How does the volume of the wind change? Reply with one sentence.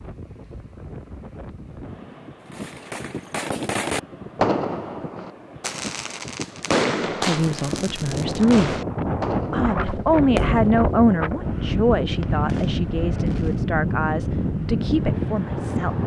The volume of the wind goes up.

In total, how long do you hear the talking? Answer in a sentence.
The talking can be heard for 8 seconds in total.